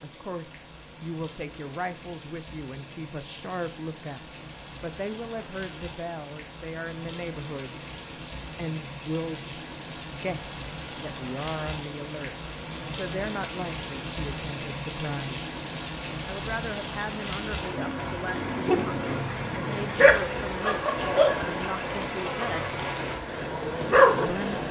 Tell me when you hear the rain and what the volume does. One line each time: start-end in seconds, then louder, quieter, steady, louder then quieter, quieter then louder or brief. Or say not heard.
0.0-24.6 louder.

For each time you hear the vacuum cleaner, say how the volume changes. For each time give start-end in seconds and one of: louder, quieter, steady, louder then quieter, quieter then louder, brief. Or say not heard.
not heard.